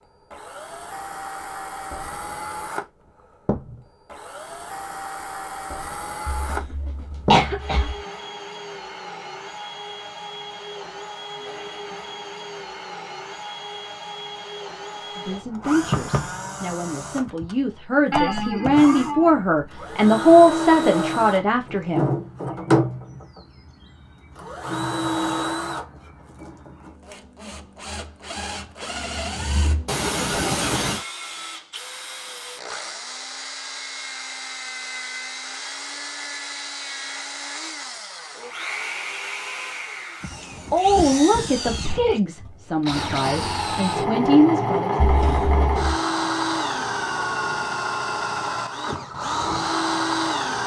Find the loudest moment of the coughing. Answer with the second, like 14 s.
7 s.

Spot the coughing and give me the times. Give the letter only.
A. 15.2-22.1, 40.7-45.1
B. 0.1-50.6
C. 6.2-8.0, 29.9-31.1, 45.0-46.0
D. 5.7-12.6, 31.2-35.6
C.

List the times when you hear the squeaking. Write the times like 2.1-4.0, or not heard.
18.1-19.4.